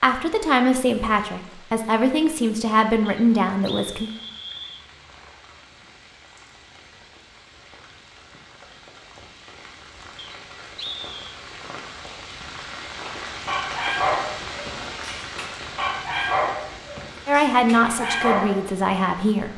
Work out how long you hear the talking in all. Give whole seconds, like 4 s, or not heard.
6 s.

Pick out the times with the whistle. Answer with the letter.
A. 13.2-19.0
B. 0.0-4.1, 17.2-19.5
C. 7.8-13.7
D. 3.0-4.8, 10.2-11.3
D.